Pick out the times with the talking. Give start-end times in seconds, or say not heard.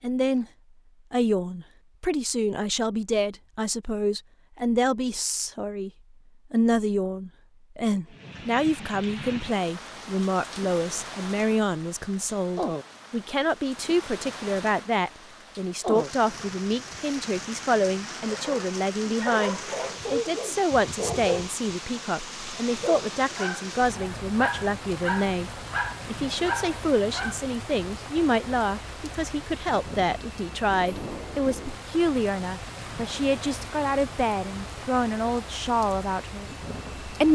0.0-0.5, 1.1-5.9, 6.5-37.2.